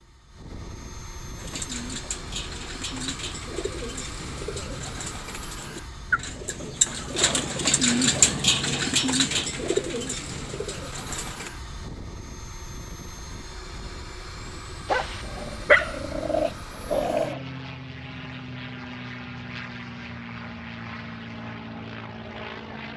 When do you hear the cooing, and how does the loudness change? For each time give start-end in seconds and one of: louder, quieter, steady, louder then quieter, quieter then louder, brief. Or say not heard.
1.4-11.5 louder then quieter.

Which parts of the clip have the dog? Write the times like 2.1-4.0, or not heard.
14.8-17.4.